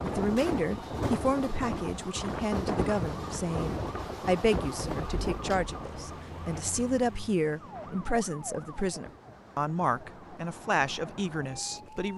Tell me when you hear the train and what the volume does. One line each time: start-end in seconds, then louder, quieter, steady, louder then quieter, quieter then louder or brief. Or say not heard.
0.0-12.1 quieter.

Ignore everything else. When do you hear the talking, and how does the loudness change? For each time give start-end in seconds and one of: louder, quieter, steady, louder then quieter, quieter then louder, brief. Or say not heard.
0.0-12.1 steady.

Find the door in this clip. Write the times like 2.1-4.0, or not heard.
not heard.